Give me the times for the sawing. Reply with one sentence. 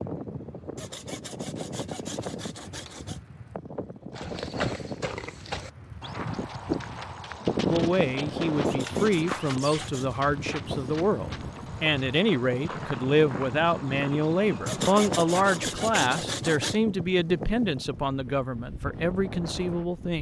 You can hear the sawing from 0.8 to 3.2 s, from 8.6 to 10.2 s and from 14.7 to 16.8 s.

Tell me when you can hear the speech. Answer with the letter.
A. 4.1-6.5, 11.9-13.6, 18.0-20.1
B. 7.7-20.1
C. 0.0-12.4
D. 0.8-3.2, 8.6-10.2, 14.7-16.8
B.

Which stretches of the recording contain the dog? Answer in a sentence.
The dog can't be heard in this clip.